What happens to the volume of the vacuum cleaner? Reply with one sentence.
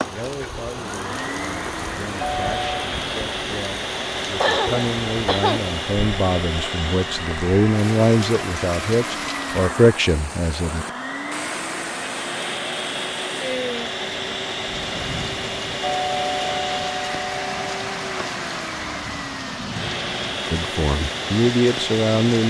The loudness of the vacuum cleaner stays about the same.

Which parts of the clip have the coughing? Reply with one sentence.
You can hear the coughing from 4.3 to 5.6 s.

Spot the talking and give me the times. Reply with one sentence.
The talking can be heard from 0.0 to 10.8 s and from 20.5 to 22.4 s.